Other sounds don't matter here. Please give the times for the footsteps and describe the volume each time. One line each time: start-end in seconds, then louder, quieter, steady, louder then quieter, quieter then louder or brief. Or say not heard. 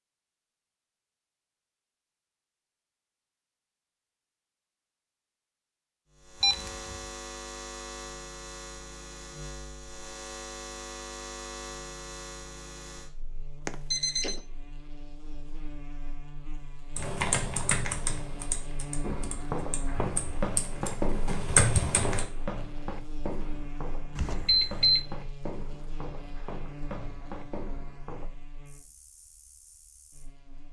19.0-28.3 quieter.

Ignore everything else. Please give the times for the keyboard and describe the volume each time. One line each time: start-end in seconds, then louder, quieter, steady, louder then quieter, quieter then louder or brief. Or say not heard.
16.9-22.2 quieter then louder.